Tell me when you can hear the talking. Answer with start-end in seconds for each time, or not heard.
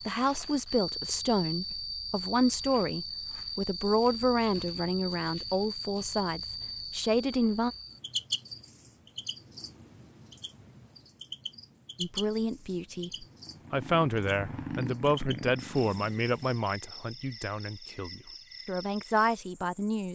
0.1-7.7, 12.0-20.1.